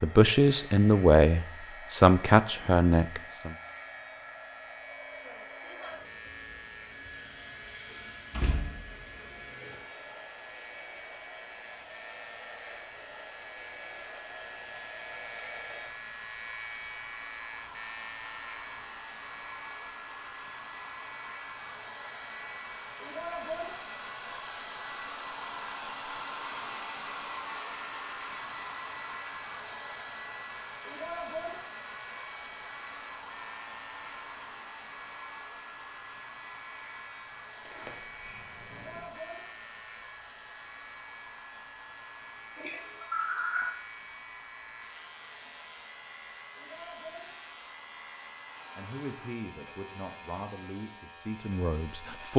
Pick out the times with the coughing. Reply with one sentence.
You can hear the coughing from 42.5 to 43.6 s.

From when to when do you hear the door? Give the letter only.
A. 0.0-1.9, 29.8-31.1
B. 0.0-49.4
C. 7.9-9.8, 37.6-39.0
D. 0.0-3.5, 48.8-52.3
C.